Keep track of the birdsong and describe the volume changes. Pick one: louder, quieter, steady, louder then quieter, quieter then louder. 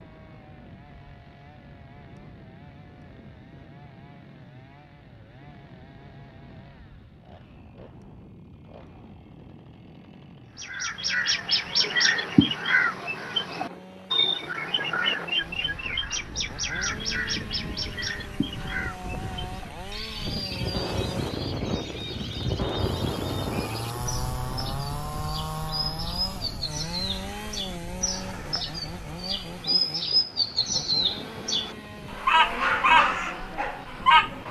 quieter then louder.